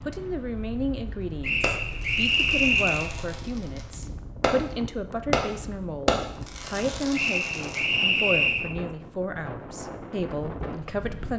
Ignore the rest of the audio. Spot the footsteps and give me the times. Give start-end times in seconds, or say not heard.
not heard.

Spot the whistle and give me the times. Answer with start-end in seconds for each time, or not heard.
1.4-3.1, 7.1-8.7.